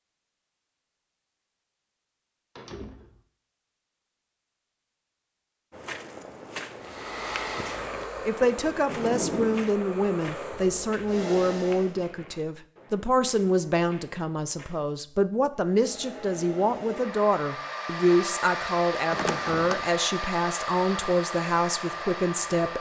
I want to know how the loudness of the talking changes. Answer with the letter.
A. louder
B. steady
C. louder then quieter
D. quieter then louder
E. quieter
B.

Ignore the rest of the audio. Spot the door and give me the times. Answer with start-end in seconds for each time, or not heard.
2.5-3.2, 8.8-9.6, 19.1-19.9.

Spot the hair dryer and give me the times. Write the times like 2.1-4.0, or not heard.
6.8-11.9, 15.7-22.7.